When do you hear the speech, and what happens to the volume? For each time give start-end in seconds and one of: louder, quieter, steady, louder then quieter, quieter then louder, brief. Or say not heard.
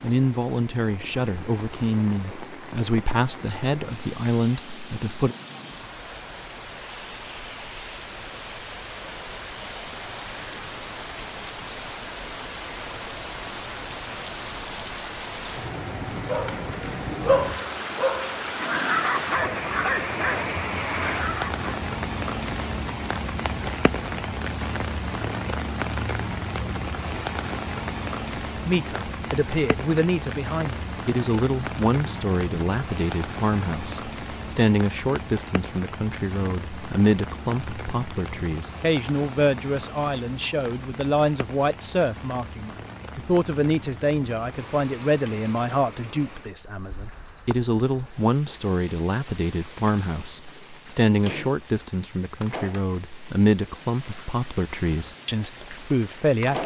0.0-5.3 steady
28.6-56.6 steady.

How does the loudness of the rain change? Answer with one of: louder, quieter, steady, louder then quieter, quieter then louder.
louder then quieter.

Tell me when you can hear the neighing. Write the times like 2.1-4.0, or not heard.
not heard.